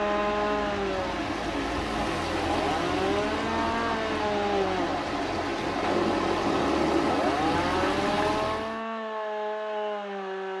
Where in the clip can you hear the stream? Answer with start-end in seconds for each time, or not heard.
0.0-8.8.